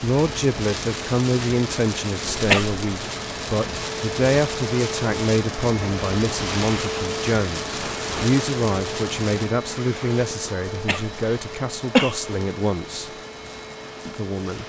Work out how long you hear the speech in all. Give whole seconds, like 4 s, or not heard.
14 s.